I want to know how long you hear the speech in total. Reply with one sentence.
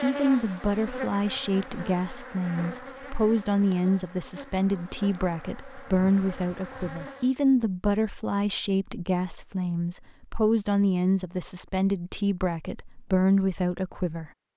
You can hear the speech for 14 seconds altogether.